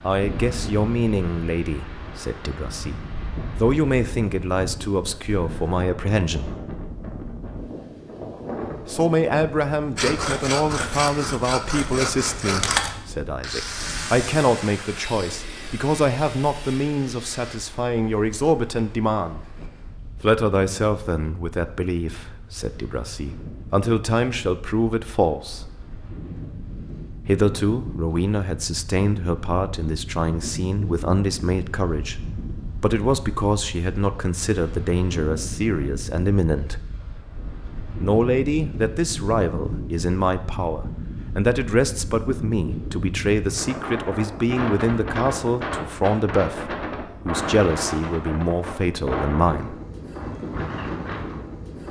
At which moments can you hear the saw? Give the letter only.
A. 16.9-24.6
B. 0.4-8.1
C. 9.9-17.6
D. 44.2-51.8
C.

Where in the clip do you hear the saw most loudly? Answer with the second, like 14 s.
13 s.